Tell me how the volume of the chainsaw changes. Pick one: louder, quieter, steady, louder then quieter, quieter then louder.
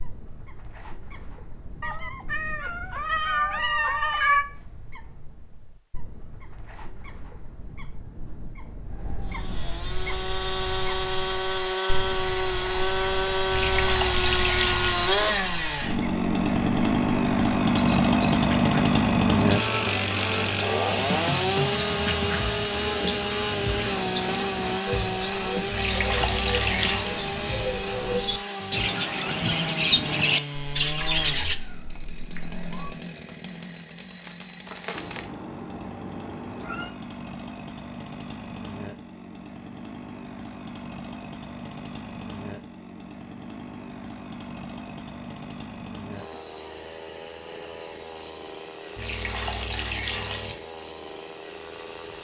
quieter.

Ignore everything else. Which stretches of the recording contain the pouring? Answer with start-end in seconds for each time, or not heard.
13.5-15.1, 25.7-27.1, 49.0-50.5.